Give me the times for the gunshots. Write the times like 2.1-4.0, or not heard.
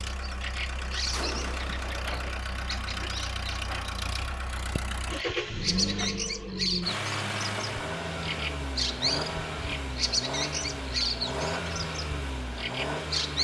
1.1-2.5.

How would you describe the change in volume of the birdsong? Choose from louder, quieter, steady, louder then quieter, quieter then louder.
louder.